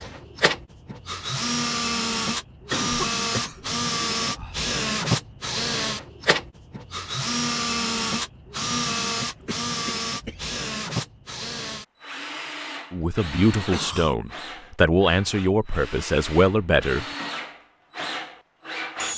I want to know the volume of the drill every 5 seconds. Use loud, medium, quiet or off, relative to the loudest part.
loud, loud, medium, medium.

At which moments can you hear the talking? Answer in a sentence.
You can hear the talking from 12.9 to 17.1 s.